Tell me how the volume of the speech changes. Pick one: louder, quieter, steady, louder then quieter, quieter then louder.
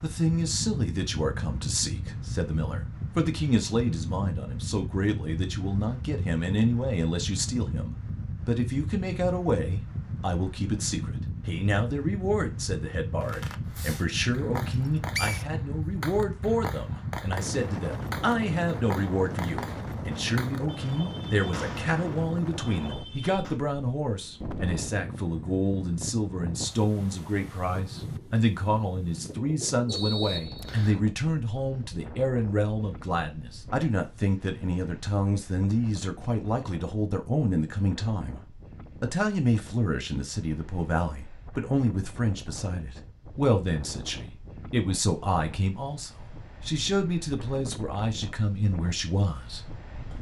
steady.